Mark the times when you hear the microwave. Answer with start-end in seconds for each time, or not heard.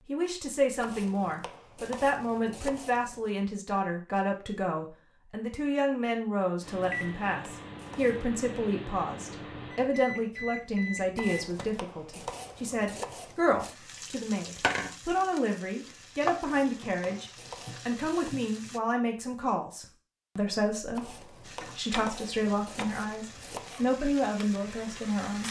6.6-11.7.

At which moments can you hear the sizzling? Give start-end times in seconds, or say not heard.
13.6-18.8, 21.4-25.4.